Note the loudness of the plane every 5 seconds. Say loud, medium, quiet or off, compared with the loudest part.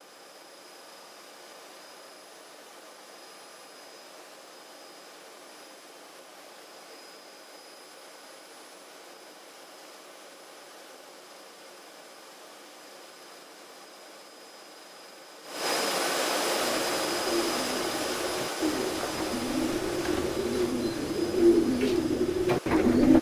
quiet, quiet, quiet, loud, medium.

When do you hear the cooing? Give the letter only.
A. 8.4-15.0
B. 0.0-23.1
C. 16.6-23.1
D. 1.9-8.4
C.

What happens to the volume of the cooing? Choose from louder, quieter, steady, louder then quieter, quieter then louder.
louder.